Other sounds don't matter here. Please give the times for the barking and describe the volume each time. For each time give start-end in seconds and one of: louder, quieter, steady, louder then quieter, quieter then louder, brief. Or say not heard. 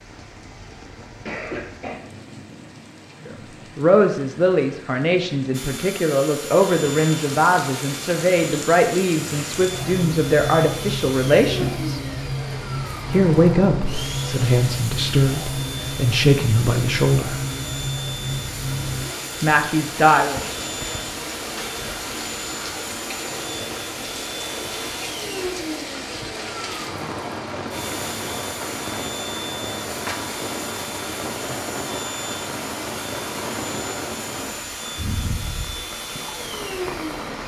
not heard.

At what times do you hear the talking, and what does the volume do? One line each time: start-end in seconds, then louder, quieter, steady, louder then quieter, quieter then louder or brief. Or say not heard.
3.8-12.0 steady
13.1-17.4 steady
19.4-20.4 brief.